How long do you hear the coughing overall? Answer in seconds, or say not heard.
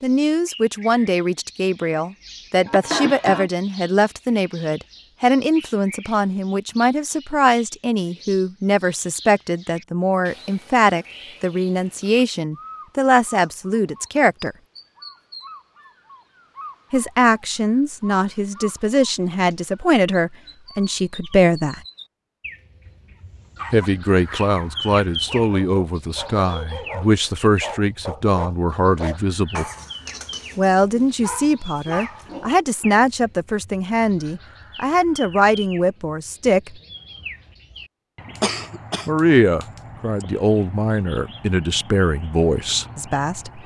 3 s.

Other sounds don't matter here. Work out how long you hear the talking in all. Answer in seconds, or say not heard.
36 s.